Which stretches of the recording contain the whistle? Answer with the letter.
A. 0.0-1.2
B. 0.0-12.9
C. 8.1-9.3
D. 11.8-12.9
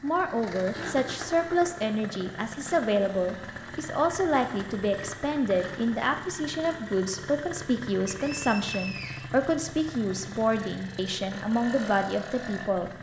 C.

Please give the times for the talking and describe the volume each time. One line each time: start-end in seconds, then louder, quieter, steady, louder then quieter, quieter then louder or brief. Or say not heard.
0.0-12.9 steady.